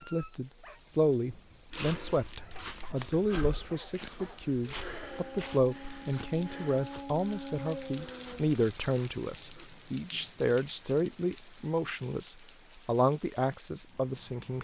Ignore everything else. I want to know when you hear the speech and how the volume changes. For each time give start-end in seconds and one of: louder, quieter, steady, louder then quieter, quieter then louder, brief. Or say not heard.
0.1-14.5 steady.